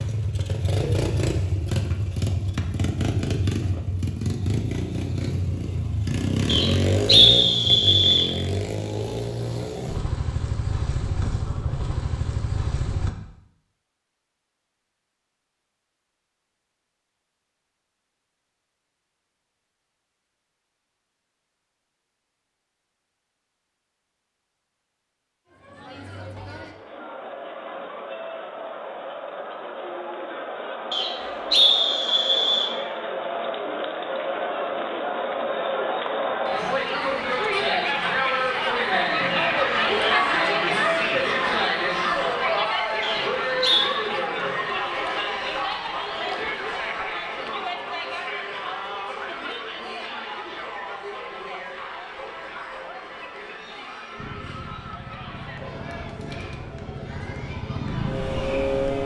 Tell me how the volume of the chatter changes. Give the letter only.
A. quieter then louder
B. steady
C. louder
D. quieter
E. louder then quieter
E.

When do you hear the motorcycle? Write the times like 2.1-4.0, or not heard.
0.0-13.1, 54.1-59.0.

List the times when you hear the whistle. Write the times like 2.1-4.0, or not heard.
6.5-8.3, 30.9-32.7, 43.0-43.9.